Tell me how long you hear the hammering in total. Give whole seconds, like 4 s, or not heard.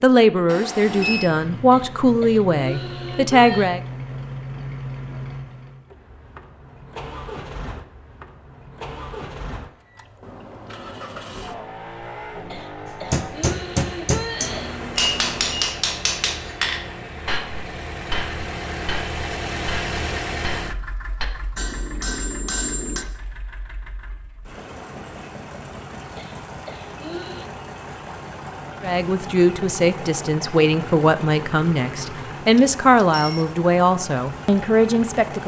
10 s.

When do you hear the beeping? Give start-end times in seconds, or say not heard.
0.5-1.3, 14.4-15.7, 32.5-33.5.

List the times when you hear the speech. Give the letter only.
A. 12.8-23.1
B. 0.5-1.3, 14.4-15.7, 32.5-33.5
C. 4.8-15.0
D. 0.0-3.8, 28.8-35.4
D.